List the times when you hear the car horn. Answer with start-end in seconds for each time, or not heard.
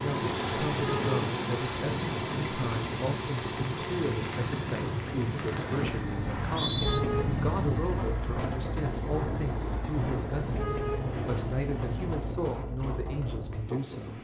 0.8-1.2, 6.6-7.8, 10.3-12.3.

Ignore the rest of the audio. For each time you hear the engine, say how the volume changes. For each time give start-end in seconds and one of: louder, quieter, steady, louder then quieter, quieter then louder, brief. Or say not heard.
0.0-12.2 quieter.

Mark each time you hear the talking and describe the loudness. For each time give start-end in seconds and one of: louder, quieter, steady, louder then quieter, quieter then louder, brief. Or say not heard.
0.0-14.1 steady.